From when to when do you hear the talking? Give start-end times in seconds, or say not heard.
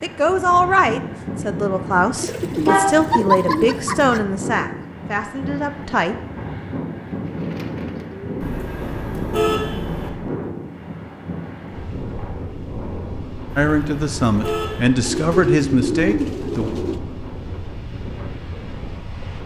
0.0-6.2, 13.6-16.7.